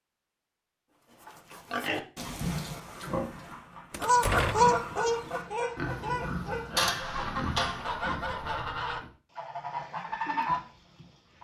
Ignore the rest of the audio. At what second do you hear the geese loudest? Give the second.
5 s.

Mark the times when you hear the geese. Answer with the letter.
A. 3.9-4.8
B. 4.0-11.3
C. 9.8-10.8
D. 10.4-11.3
B.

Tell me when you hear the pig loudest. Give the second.
7 s.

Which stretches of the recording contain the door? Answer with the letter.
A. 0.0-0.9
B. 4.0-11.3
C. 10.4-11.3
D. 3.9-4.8
D.